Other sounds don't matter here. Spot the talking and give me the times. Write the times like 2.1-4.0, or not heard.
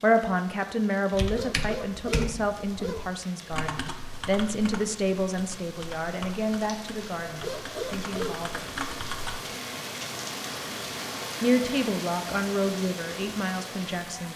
0.0-8.8, 11.4-14.3.